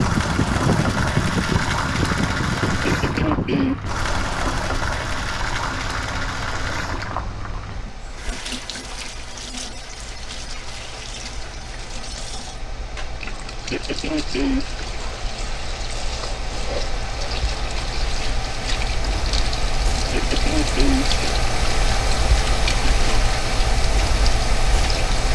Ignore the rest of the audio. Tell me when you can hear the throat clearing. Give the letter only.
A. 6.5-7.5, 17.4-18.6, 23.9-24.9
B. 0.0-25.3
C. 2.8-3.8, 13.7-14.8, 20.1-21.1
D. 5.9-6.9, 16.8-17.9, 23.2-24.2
C.